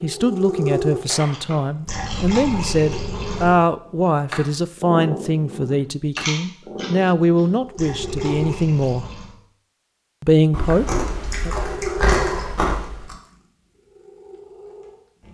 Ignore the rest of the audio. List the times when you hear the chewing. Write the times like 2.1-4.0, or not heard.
1.0-2.4, 6.2-7.4, 10.5-13.2.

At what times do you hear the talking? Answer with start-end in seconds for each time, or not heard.
0.0-9.1, 10.2-11.6.